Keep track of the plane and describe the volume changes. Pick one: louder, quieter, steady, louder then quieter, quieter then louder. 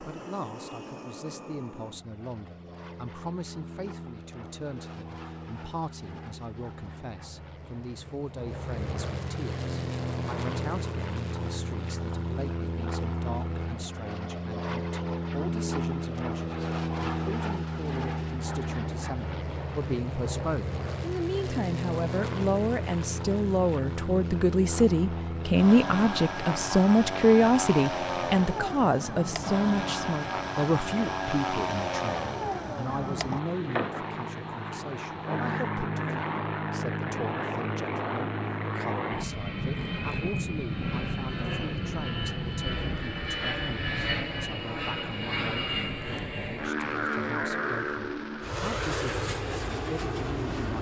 louder.